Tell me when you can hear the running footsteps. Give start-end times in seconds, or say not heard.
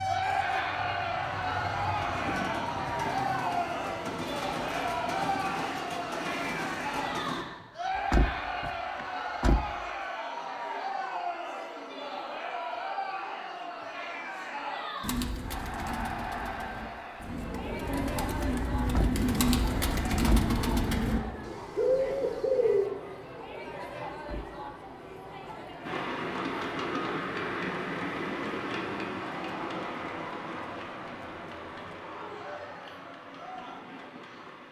not heard.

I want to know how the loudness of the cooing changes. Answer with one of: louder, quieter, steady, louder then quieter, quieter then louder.
louder.